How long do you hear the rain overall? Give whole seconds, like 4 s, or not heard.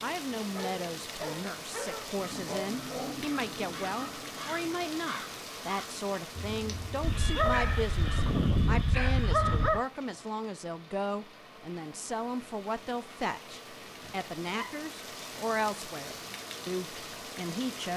18 s.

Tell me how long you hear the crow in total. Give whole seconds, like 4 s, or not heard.
6 s.